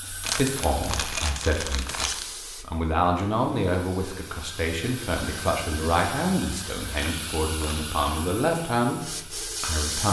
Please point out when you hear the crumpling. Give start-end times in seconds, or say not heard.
0.2-2.2, 6.9-7.8.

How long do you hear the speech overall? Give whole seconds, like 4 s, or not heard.
10 s.